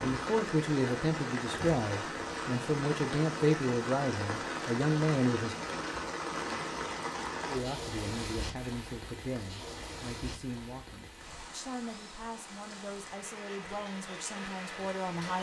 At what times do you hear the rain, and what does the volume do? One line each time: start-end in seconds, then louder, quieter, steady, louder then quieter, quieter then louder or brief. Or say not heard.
0.0-15.3 quieter.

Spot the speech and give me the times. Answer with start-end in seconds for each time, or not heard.
0.0-5.5, 7.5-15.3.